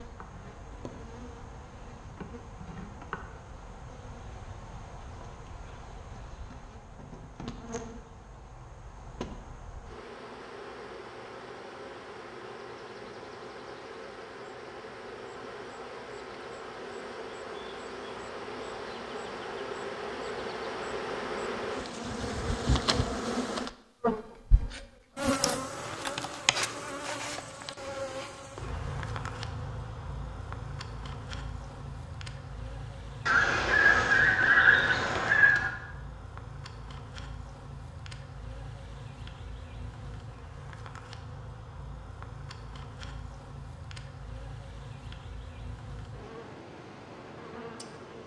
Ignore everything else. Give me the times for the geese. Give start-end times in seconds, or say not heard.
33.2-35.7.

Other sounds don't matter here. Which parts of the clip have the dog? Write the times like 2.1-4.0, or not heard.
not heard.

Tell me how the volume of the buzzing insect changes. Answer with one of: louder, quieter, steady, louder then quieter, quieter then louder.
louder then quieter.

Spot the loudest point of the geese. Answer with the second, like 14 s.
35 s.